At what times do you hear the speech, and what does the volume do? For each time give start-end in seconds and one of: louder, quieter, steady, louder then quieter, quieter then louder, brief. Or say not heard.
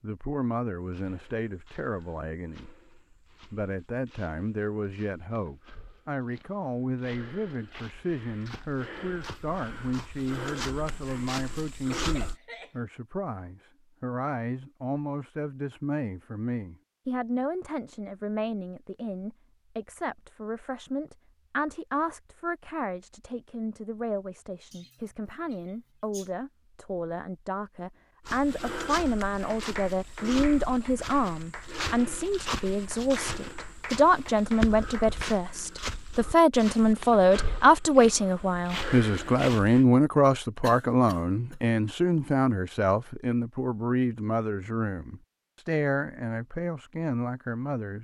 0.0-2.7 brief
3.5-47.9 louder.